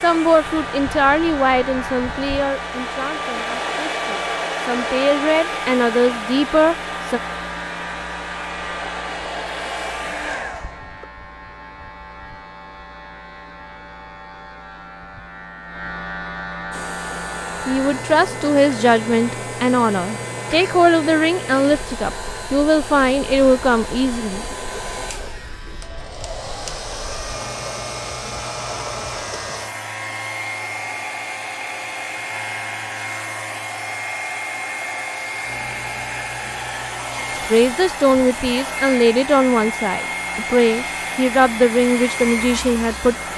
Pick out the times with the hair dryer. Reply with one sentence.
The hair dryer can be heard from 0.0 to 11.1 s and from 16.7 to 43.3 s.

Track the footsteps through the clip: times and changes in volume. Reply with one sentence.
You can't hear the footsteps here.